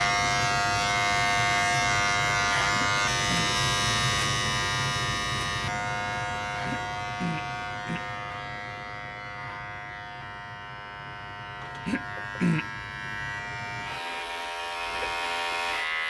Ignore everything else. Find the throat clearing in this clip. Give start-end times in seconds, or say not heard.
2.7-3.5, 6.7-8.0, 11.8-12.7.